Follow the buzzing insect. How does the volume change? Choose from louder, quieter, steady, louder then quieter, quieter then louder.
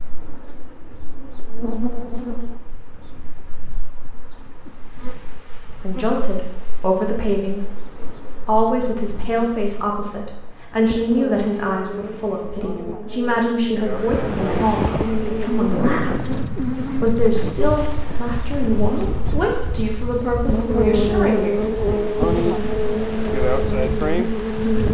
quieter then louder.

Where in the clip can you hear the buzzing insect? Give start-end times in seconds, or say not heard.
0.0-24.9.